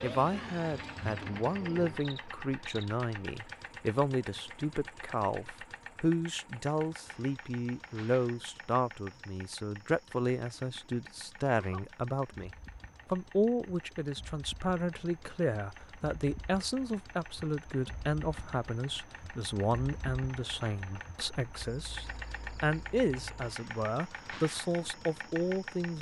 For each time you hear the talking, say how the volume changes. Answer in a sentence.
You can hear the talking from 0.0 to 25.9 s, at a steady volume.